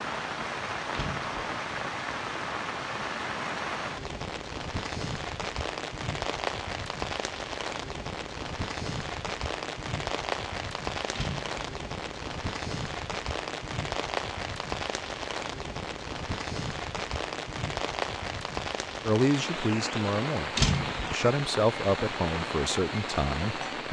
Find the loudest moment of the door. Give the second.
21 s.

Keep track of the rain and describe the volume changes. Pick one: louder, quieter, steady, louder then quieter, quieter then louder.
steady.